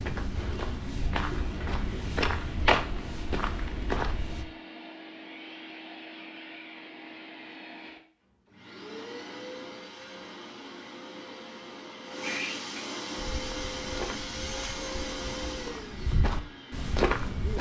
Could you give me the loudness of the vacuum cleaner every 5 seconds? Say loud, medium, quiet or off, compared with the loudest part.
medium, medium, loud, loud.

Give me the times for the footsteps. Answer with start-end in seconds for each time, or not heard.
0.0-4.5, 13.2-17.5.